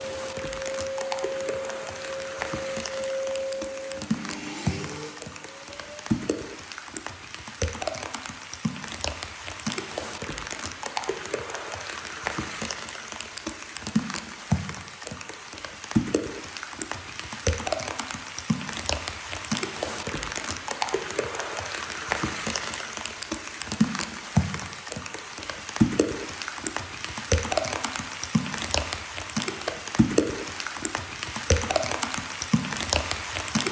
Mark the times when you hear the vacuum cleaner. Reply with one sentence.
The vacuum cleaner can be heard from 0.0 to 6.2 s.